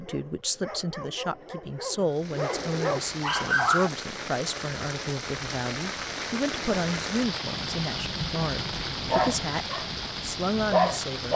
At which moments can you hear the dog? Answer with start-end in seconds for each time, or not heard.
0.0-3.9, 8.9-11.3.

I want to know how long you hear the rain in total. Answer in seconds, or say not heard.
9 s.